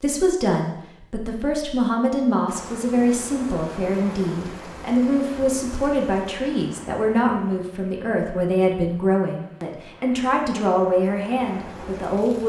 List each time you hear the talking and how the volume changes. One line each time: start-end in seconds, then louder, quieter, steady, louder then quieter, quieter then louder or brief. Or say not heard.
0.0-12.4 steady.